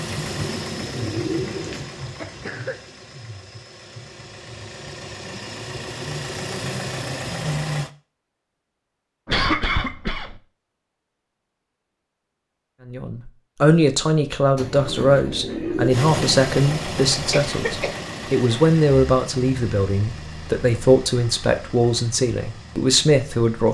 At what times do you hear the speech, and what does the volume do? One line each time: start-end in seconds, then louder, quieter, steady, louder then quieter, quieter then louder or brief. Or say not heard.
12.8-23.6 steady.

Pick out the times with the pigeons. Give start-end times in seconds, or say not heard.
0.1-1.9, 14.6-16.3.